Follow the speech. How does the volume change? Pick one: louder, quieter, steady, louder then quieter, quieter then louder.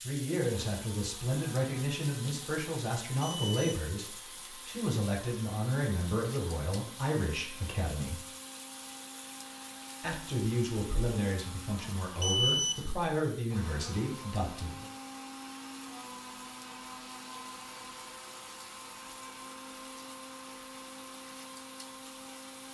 steady.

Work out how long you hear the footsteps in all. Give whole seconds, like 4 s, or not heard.
not heard.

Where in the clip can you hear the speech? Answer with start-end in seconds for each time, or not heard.
0.1-8.2, 10.0-14.8.